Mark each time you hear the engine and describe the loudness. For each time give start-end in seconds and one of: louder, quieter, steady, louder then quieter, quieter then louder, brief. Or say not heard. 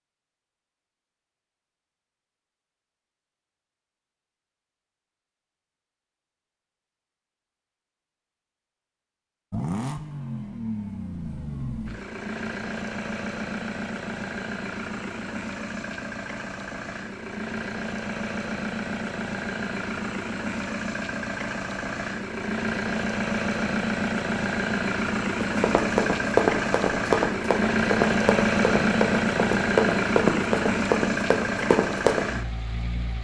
9.5-33.1 louder.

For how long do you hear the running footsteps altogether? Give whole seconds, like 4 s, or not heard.
7 s.